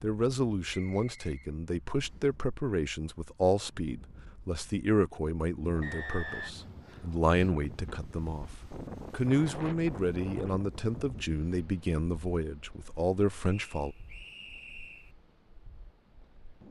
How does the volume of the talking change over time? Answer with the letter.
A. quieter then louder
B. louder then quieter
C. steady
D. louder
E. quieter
C.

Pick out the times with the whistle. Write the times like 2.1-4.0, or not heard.
0.7-2.2, 5.8-6.5, 13.4-15.2.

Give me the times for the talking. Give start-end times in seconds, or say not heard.
0.0-13.9.